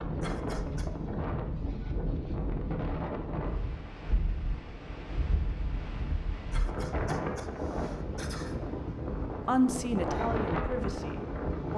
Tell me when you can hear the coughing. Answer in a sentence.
The coughing can be heard from 0.2 to 0.9 s and from 6.5 to 8.6 s.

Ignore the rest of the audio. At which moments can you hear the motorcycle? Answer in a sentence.
You can't hear the motorcycle here.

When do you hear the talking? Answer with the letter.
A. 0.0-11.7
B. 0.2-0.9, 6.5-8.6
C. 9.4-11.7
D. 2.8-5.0
C.